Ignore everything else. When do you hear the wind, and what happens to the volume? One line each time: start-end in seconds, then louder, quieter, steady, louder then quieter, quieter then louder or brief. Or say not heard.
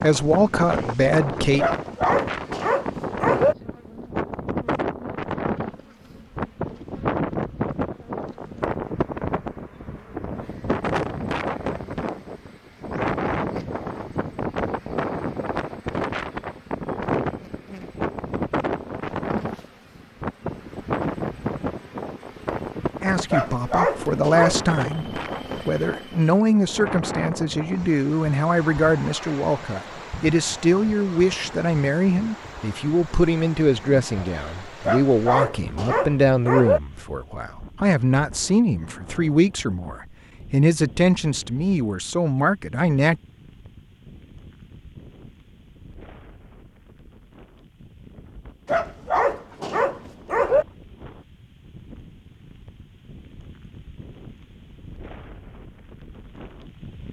0.0-57.0 quieter.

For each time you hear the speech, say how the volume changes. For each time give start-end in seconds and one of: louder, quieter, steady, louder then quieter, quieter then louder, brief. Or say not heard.
0.0-1.6 brief
23.0-43.2 steady.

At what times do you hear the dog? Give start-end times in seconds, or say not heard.
1.6-3.5, 23.3-24.8, 34.9-36.8, 48.6-50.6.